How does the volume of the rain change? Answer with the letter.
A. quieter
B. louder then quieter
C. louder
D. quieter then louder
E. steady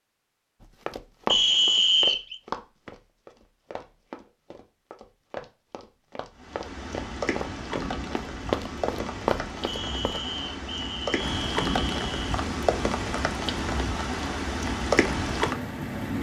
C.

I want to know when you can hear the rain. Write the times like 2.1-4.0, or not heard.
6.3-16.1.